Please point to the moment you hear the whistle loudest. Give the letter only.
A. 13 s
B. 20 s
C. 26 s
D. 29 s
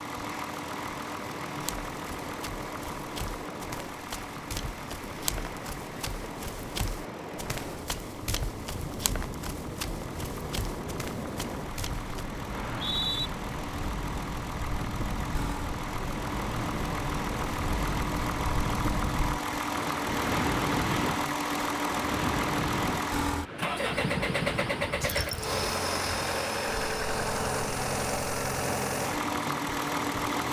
A.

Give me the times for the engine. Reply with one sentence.
The engine can be heard from 0.0 to 30.4 s.